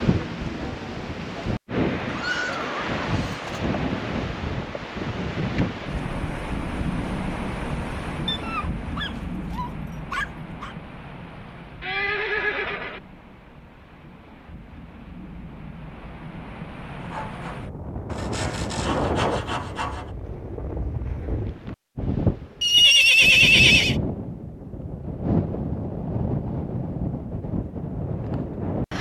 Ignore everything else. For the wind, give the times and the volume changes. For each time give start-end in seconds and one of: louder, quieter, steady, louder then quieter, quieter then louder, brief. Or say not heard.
0.0-28.9 quieter then louder.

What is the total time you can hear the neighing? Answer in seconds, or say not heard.
4 s.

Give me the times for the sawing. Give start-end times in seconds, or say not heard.
16.9-20.1.